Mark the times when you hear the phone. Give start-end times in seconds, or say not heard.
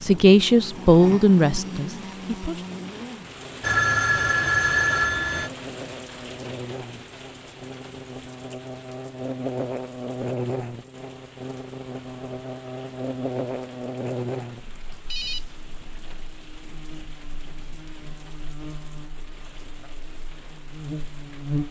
3.6-5.5, 15.1-15.8.